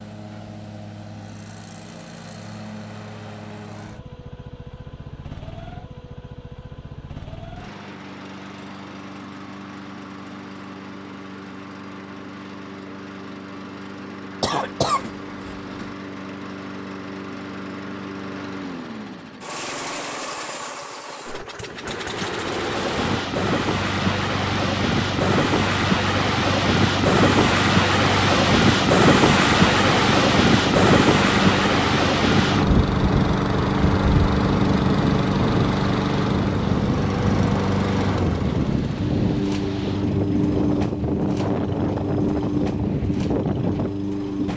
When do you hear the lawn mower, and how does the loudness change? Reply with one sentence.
The lawn mower can be heard from 0.0 to 44.5 s, getting louder.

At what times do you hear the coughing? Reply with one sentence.
You can hear the coughing from 14.4 to 15.9 s.